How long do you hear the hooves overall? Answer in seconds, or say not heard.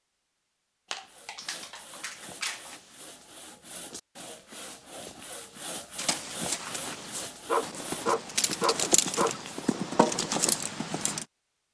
5 s.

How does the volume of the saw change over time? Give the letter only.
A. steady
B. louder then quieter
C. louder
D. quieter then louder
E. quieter
C.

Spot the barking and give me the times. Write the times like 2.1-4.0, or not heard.
0.9-2.8, 7.5-9.3.